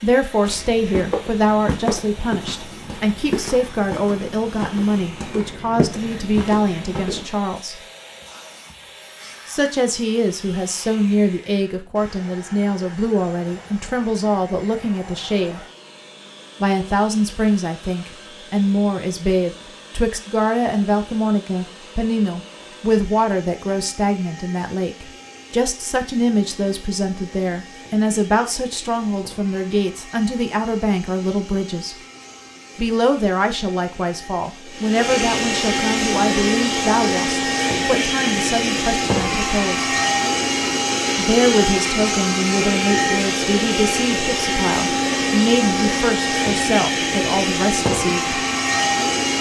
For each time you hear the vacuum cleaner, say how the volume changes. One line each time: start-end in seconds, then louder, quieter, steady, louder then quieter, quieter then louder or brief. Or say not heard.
0.0-49.3 louder.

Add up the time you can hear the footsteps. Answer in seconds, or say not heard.
7 s.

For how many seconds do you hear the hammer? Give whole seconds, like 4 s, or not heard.
not heard.